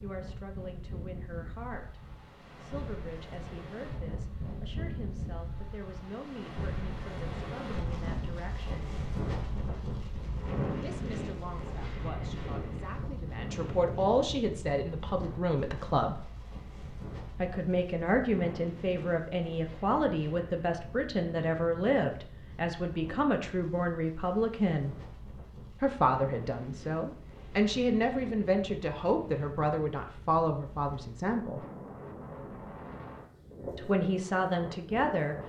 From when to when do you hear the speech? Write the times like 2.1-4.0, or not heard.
0.0-8.9, 10.8-16.3, 17.3-24.9, 25.8-31.6, 33.8-35.4.